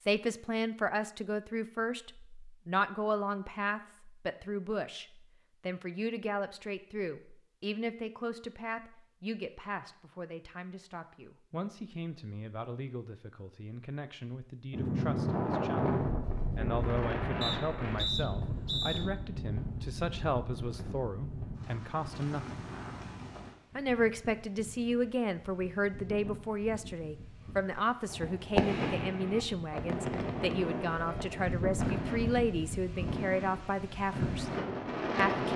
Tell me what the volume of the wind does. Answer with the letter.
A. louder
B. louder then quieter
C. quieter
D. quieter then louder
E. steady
D.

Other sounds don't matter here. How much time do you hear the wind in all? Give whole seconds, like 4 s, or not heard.
21 s.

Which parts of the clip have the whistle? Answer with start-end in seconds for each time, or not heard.
17.4-19.1.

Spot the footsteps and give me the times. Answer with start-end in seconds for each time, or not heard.
not heard.